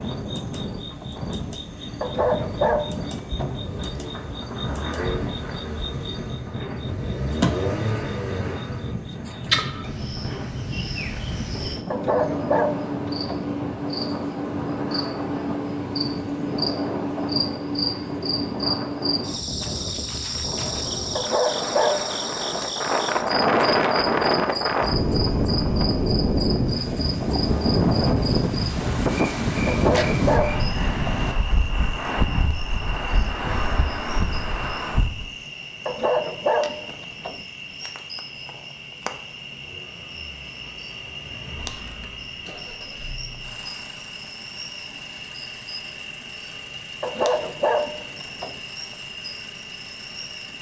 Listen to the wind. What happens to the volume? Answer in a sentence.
The loudness of the wind goes up.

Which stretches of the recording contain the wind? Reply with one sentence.
You can hear the wind from 0.0 to 35.3 s.